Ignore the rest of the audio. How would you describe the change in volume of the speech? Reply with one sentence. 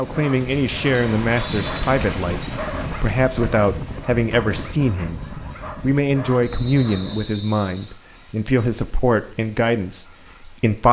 The volume of the speech stays about the same.